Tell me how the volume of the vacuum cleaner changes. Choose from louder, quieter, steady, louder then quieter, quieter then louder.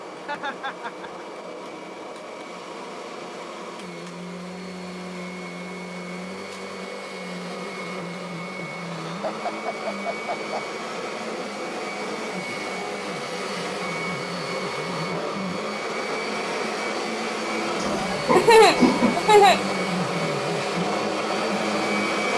louder.